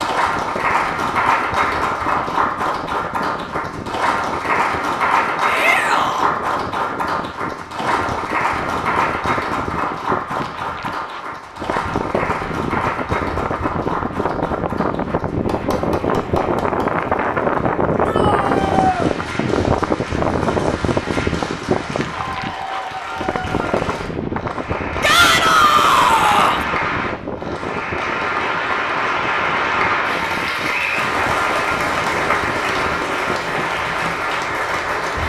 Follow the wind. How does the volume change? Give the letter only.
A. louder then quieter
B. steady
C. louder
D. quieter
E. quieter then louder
A.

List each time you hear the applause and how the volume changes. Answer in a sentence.
The applause can be heard from 0.0 to 35.2 s, getting quieter then louder.